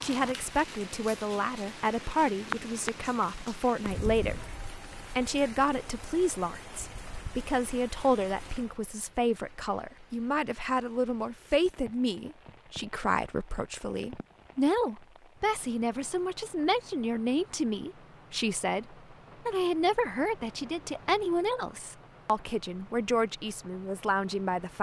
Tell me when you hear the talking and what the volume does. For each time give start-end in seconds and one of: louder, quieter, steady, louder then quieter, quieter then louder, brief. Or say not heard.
0.0-24.7 steady.